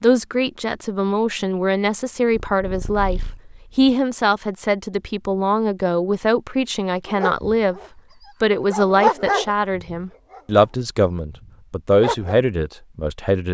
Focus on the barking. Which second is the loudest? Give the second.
9 s.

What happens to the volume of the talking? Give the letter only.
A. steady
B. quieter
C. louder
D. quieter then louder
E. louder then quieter
A.